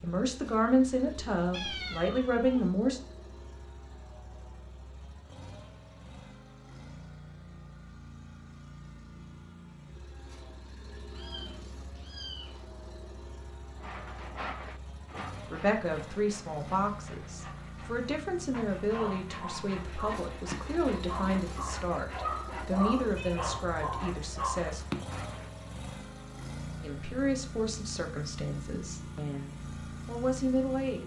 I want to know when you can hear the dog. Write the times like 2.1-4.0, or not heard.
18.9-25.1.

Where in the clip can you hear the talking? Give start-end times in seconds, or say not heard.
0.0-3.0, 15.5-24.9, 26.8-31.0.